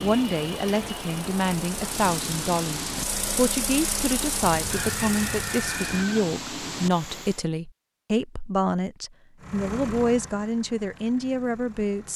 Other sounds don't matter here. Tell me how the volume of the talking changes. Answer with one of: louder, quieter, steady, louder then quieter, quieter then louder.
steady.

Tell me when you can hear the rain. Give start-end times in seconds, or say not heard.
0.0-7.5.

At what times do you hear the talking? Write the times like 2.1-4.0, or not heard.
0.0-12.1.